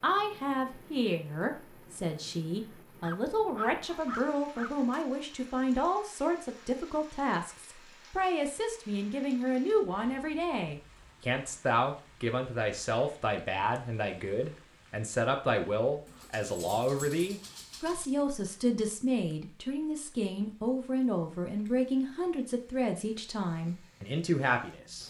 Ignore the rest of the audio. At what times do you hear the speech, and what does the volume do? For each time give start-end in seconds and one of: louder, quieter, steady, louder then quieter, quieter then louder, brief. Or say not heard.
0.0-25.0 steady.